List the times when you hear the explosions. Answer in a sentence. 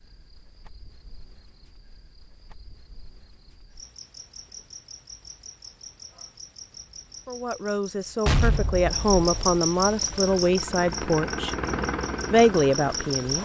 You can hear the explosions from 8.2 to 9.6 s.